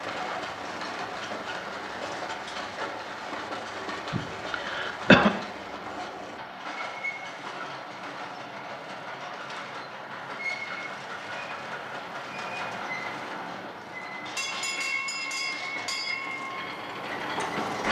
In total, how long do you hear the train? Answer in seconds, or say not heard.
18 s.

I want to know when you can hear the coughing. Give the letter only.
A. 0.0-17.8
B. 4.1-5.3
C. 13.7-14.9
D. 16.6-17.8
B.